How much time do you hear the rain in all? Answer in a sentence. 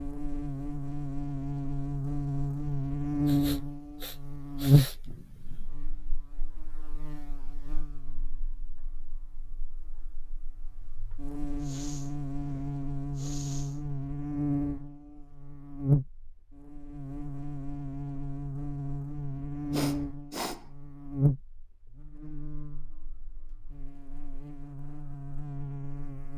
You can't hear the rain here.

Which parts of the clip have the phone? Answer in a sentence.
The phone can't be heard in this clip.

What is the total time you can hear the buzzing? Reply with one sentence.
The buzzing can be heard for 26 seconds in total.